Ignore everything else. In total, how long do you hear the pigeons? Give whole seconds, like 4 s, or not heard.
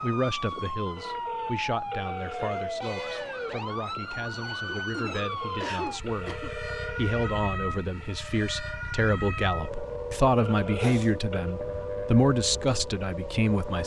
not heard.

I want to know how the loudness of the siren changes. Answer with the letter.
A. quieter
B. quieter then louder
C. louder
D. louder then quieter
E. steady
E.